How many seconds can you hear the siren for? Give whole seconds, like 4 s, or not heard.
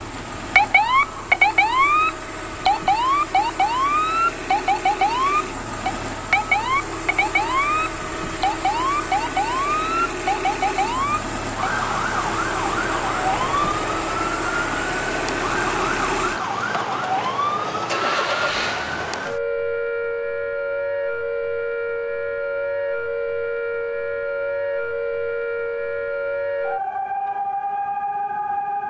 29 s.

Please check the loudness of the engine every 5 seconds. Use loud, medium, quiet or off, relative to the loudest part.
medium, loud, loud, loud, off, off.